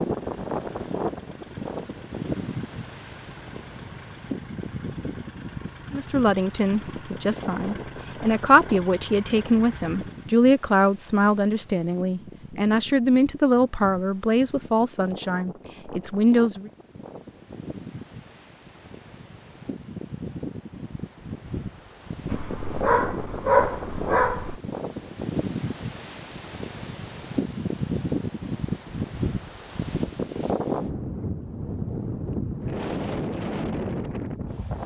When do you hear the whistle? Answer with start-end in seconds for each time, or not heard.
not heard.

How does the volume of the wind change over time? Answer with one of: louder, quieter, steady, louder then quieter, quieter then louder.
quieter then louder.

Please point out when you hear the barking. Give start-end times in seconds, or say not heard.
22.2-24.6.